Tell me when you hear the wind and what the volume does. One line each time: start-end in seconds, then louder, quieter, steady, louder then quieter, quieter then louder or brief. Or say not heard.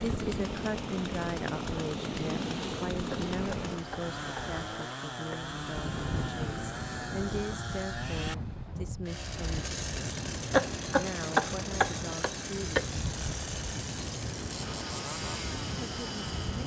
0.0-16.6 steady.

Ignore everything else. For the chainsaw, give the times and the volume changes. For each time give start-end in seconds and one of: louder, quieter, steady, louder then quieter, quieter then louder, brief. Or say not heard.
0.0-16.6 steady.